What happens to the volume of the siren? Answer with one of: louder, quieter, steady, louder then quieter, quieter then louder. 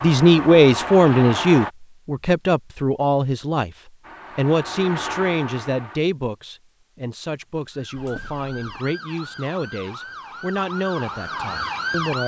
louder.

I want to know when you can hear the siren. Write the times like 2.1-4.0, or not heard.
7.7-12.2.